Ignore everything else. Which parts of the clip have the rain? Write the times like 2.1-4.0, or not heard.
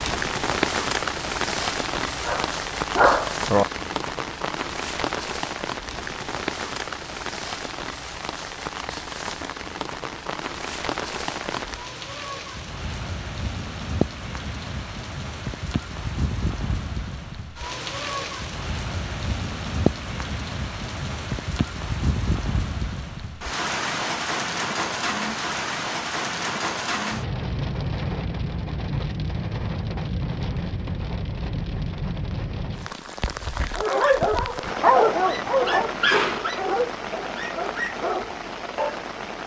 0.0-39.4.